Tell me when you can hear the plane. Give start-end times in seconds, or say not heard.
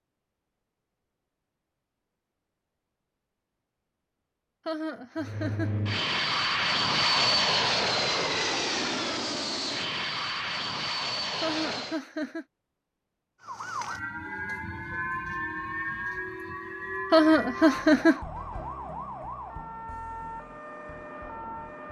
5.2-12.0.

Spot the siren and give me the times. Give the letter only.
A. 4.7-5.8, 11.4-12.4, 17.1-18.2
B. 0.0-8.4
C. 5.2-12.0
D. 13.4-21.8
D.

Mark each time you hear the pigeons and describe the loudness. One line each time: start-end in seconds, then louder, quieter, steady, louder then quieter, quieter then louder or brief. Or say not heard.
not heard.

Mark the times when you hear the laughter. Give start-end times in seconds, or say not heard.
4.7-5.8, 11.4-12.4, 17.1-18.2.